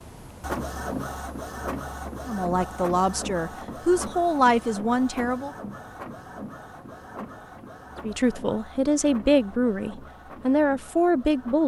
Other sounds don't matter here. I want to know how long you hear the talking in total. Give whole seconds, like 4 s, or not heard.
7 s.